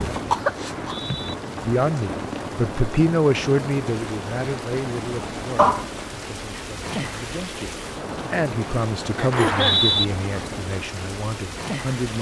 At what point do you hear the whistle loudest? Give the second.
10 s.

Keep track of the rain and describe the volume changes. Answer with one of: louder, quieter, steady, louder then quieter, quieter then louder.
steady.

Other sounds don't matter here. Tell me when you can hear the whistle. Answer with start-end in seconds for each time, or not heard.
0.6-1.4, 9.3-10.1.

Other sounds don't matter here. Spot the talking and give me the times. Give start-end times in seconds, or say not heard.
1.6-12.1.